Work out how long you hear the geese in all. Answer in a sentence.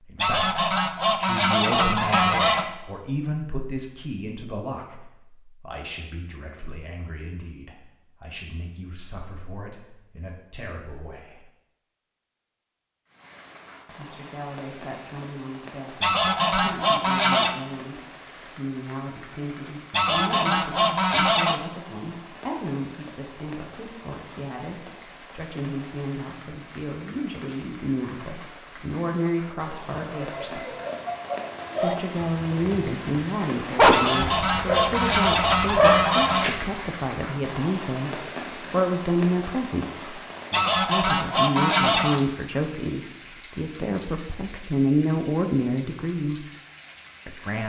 The geese can be heard for 10 seconds in total.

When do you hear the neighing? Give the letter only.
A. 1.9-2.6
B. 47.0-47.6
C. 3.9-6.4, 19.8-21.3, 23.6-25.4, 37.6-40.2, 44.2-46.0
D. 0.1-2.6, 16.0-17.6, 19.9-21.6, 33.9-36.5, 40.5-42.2
A.